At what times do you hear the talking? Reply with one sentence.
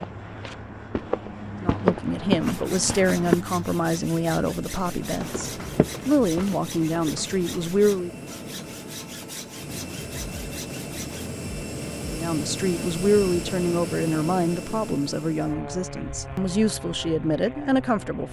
The talking can be heard from 1.6 to 8.1 s and from 12.1 to 18.2 s.